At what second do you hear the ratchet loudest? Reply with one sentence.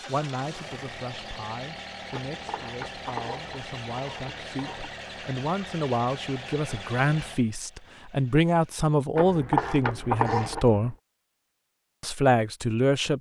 The volume of the ratchet peaks at 10 seconds.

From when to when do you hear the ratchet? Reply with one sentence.
You can hear the ratchet from 2.1 to 4.9 s and from 9.2 to 10.9 s.